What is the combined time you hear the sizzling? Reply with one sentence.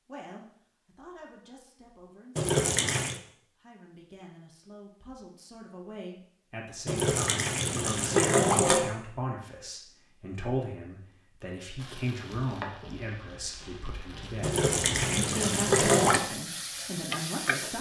You can hear the sizzling for 6 seconds altogether.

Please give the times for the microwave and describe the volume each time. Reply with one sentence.
You can't hear the microwave here.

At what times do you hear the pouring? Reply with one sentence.
The pouring can be heard from 2.4 to 3.2 s, from 6.8 to 8.9 s and from 14.4 to 16.2 s.